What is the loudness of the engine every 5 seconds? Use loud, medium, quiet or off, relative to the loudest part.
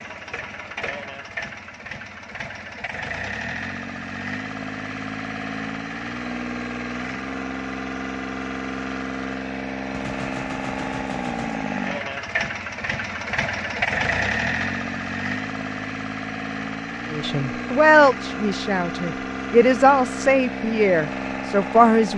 medium, loud, loud, loud, loud.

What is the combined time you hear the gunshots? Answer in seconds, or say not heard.
2 s.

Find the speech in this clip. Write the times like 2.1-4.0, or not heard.
17.1-22.1.